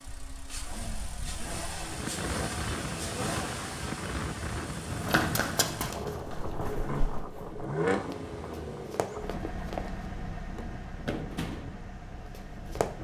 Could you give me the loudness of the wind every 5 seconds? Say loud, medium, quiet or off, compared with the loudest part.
loud, loud, medium.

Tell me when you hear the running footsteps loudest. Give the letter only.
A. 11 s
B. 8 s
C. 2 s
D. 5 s
D.